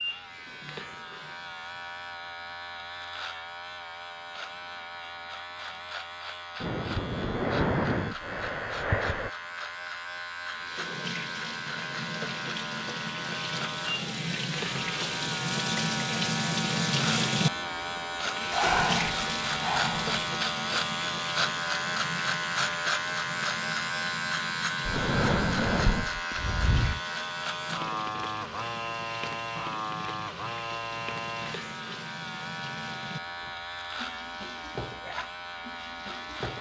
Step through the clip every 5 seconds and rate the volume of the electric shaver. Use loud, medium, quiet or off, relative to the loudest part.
medium, medium, medium, loud, loud, loud, medium, medium.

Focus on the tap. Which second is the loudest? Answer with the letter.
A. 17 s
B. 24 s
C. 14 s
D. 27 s
A.